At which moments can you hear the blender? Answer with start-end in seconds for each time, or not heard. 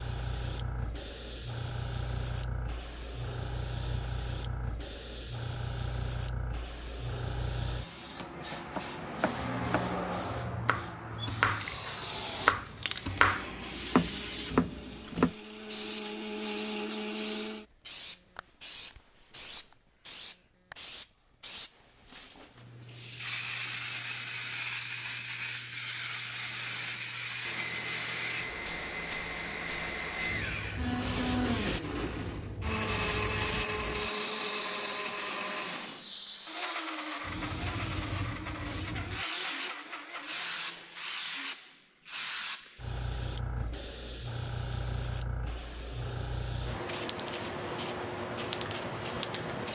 12.8-17.6, 26.4-41.2.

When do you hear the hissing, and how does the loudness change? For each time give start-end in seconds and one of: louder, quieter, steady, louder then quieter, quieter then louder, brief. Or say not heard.
0.0-49.7 steady.